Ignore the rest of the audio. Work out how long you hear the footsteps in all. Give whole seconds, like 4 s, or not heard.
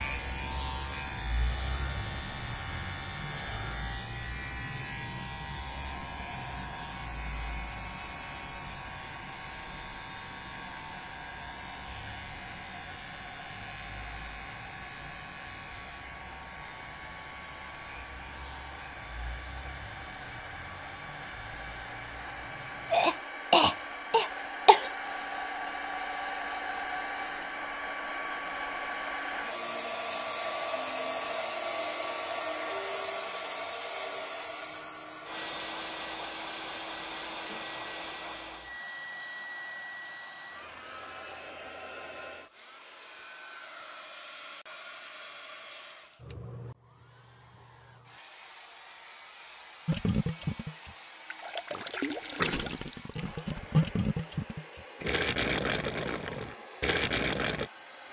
not heard.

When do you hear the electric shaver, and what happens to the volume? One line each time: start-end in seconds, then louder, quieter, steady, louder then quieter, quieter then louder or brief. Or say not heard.
0.0-23.2 quieter.